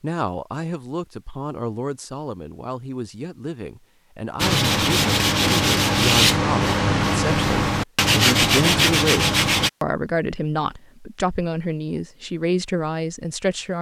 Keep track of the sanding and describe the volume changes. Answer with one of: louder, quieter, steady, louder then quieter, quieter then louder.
steady.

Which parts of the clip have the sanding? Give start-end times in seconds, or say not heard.
4.4-9.7.